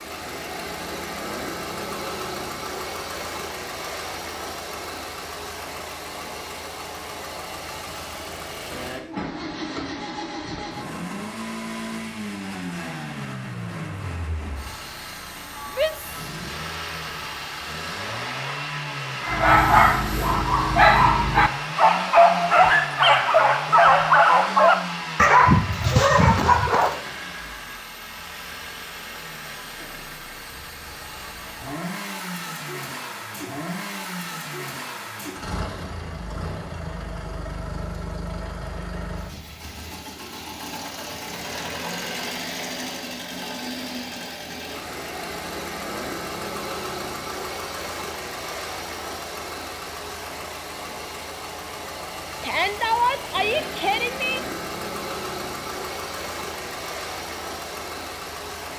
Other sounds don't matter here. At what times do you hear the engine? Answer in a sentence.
The engine can be heard from 0.0 to 58.7 s.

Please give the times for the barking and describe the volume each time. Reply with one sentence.
The barking can be heard from 19.2 to 27.0 s, at a steady volume.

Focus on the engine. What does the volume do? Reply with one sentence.
The loudness of the engine stays about the same.